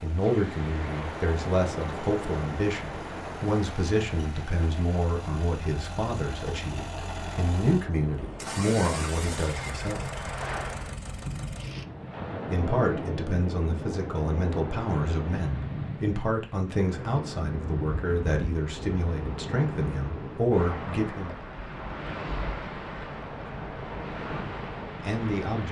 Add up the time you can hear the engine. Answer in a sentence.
You can hear the engine for 12 seconds altogether.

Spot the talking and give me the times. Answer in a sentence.
You can hear the talking from 0.0 to 10.2 s, from 12.5 to 21.4 s and from 25.0 to 25.6 s.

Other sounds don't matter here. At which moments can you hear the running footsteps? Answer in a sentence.
You can't hear the running footsteps here.